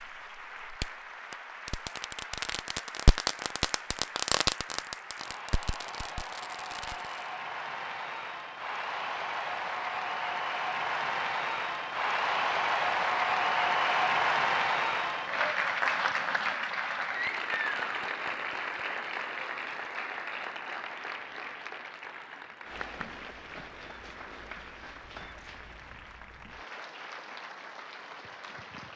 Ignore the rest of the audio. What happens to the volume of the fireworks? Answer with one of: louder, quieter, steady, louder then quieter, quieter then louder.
louder then quieter.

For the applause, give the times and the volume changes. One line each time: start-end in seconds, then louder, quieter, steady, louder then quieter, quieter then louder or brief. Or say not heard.
0.0-28.9 louder then quieter.